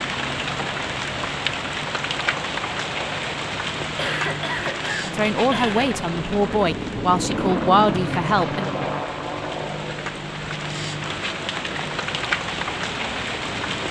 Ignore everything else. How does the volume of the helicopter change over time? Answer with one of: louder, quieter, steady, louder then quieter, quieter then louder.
louder then quieter.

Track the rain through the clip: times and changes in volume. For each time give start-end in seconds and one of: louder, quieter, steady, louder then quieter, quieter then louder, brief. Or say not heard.
0.0-13.8 quieter then louder.